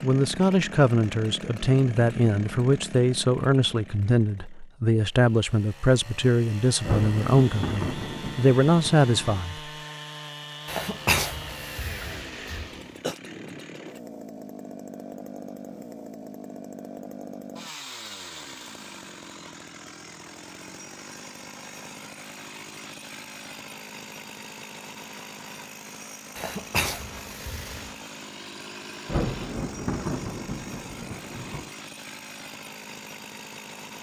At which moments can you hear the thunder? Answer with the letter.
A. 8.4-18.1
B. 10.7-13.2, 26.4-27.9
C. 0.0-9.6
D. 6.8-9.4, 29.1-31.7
D.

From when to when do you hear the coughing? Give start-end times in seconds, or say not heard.
10.7-13.2, 26.4-27.9.